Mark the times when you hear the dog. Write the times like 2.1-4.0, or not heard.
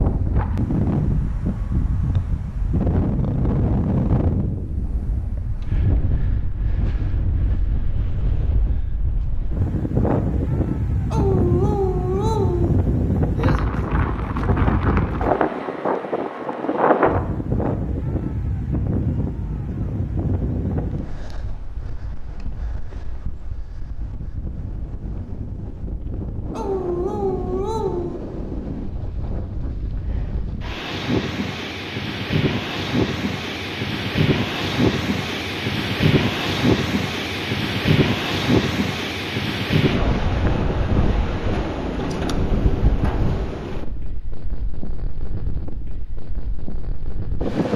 11.1-12.8, 26.5-28.2.